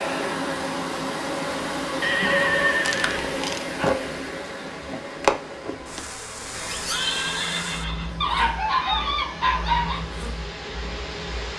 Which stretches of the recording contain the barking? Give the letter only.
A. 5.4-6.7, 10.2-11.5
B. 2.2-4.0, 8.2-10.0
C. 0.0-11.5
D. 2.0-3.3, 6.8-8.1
B.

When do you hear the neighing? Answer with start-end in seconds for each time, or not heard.
2.0-3.3, 6.8-8.1.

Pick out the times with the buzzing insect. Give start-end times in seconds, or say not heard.
0.0-11.5.